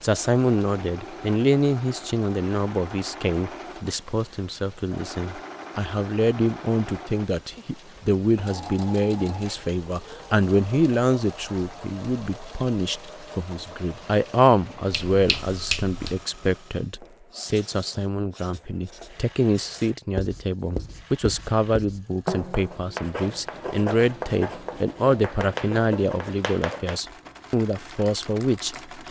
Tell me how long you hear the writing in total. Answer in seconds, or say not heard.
10 s.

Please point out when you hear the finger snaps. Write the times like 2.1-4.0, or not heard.
14.9-16.2.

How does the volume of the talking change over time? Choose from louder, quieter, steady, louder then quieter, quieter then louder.
steady.